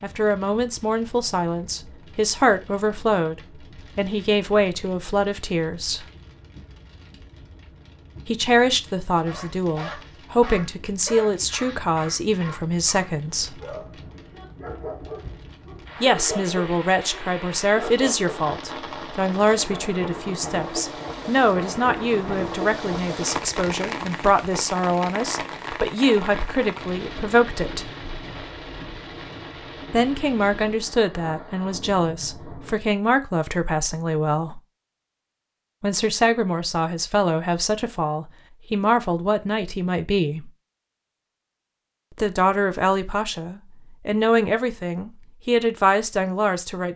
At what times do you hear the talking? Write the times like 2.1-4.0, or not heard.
0.0-6.0, 8.2-13.6, 16.0-27.9, 29.9-34.6, 35.8-40.5, 42.1-46.9.